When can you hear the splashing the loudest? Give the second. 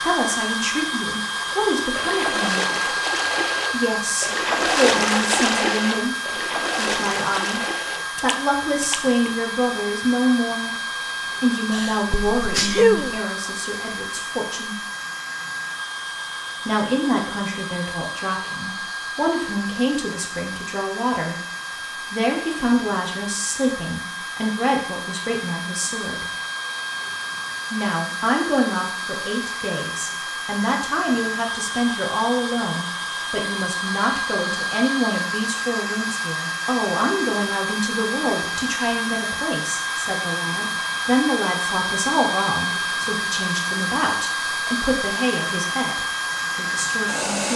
5 s.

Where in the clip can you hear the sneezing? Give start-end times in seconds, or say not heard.
11.7-13.2.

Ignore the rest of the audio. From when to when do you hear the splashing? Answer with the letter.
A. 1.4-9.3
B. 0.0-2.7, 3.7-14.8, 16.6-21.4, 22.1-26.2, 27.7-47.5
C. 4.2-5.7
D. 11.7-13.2
A.